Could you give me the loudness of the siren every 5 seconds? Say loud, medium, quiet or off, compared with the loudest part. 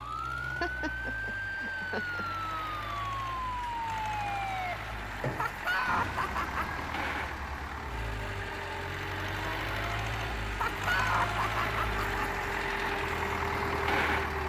loud, medium, medium.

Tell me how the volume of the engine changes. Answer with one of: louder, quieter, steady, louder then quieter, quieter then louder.
louder.